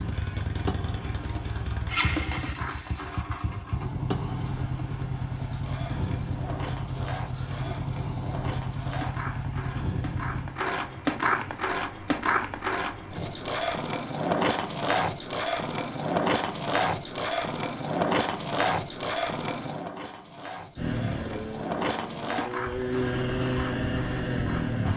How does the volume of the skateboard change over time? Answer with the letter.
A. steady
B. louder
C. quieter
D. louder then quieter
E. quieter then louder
D.